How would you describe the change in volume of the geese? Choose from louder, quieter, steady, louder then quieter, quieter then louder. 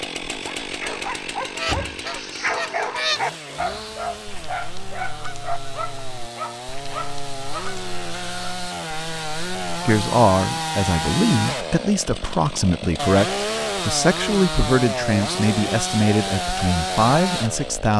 quieter.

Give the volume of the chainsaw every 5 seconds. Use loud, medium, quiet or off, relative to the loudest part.
medium, medium, loud, loud.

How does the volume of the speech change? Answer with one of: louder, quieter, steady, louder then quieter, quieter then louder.
steady.